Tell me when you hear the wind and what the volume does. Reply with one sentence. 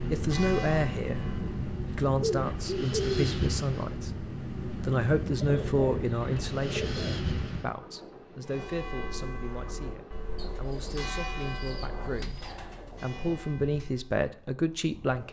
You can hear the wind from 0.0 to 15.2 s, getting quieter.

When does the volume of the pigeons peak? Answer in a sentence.
The volume of the pigeons peaks at 3 seconds.